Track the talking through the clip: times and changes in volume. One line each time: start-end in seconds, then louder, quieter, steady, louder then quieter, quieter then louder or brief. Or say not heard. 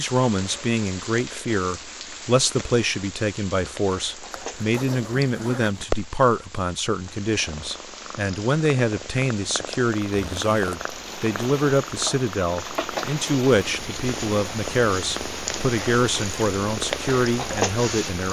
0.0-18.2 steady.